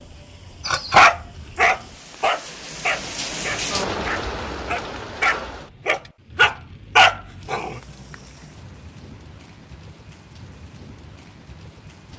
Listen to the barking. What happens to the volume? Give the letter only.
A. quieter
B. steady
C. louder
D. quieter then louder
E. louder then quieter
D.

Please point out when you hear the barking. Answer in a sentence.
The barking can be heard from 0.7 to 7.8 s.